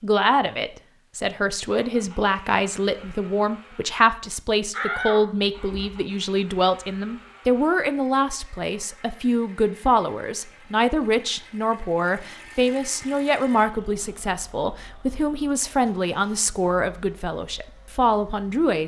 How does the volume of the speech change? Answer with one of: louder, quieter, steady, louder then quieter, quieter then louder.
steady.